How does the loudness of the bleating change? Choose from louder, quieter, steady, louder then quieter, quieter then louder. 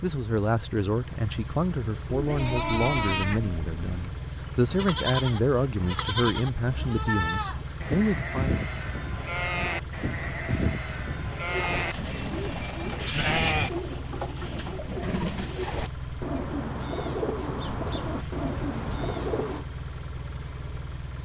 steady.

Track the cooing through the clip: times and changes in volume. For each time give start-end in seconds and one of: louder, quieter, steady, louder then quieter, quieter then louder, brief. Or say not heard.
11.4-19.6 steady.